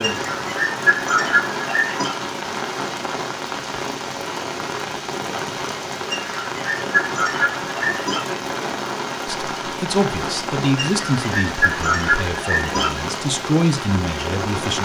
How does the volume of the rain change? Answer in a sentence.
The volume of the rain stays about the same.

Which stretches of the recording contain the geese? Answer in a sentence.
You can hear the geese from 0.0 to 2.1 s, from 6.1 to 8.3 s and from 10.8 to 13.0 s.